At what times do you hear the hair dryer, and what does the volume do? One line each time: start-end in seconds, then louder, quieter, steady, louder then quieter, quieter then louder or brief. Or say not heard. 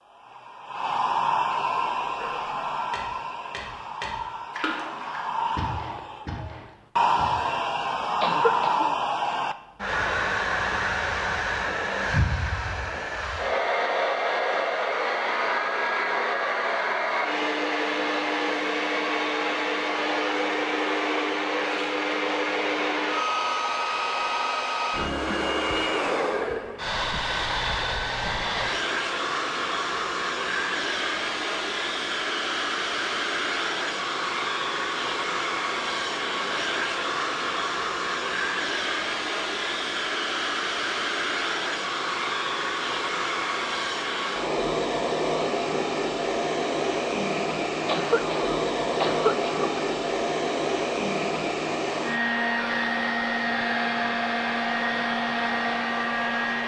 0.0-56.6 steady.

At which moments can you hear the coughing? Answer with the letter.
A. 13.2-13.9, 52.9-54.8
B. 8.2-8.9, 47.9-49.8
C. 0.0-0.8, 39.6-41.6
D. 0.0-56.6
B.